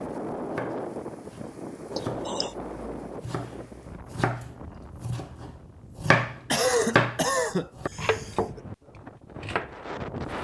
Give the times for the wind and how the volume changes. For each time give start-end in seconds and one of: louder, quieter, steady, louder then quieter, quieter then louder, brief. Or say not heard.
0.0-10.3 quieter then louder.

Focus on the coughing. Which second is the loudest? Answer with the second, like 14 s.
7 s.